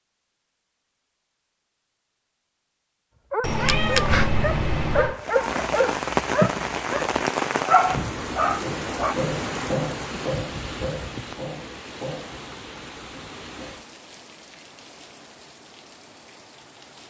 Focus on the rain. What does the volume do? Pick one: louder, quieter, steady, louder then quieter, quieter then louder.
quieter.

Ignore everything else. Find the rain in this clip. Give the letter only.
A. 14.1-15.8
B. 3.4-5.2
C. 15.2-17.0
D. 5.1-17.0
D.